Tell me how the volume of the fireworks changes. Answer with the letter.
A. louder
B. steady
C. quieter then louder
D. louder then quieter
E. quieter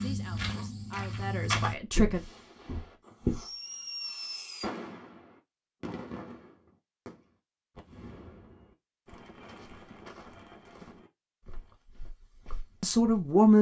E.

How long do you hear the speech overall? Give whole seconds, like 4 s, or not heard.
3 s.